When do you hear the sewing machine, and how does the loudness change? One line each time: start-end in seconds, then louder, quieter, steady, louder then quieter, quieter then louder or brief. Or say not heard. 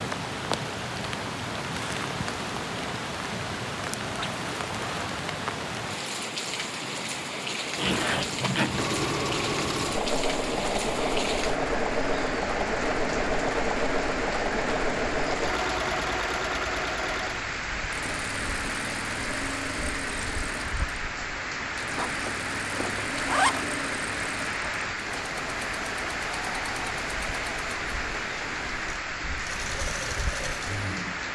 8.7-31.2 quieter.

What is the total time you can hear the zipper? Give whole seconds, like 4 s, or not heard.
3 s.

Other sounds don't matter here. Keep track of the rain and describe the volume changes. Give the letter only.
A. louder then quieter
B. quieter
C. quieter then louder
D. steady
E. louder
D.